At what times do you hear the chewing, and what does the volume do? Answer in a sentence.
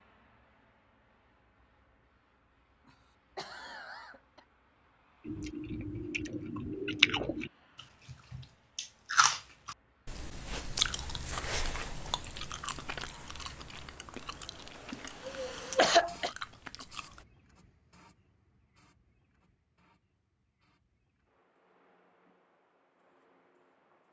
You can hear the chewing from 5.2 to 17.2 s, getting quieter.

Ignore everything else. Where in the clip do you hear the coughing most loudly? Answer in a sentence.
The volume of the coughing peaks at 16 seconds.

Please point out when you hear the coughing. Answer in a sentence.
The coughing can be heard from 2.9 to 4.5 s and from 15.3 to 16.3 s.